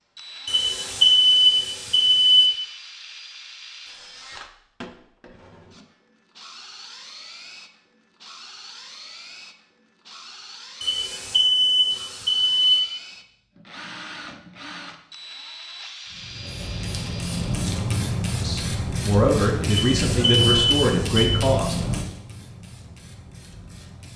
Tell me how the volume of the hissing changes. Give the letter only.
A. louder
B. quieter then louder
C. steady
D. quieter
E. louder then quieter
D.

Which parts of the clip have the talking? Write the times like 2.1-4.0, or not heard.
18.4-21.8.